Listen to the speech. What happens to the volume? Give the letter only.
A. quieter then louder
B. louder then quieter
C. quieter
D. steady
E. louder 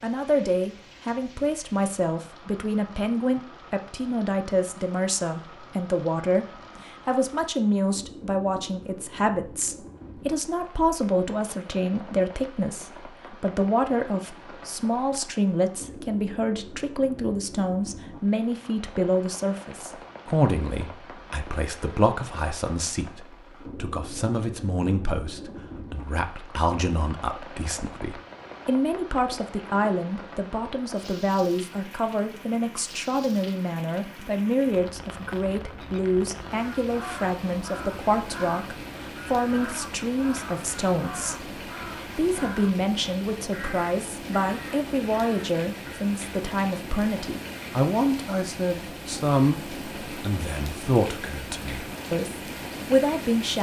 D.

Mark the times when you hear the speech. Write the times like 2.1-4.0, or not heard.
0.0-53.5.